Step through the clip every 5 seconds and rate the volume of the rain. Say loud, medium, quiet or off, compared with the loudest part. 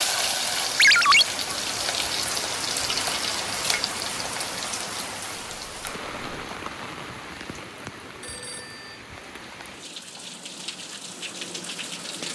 loud, medium, medium.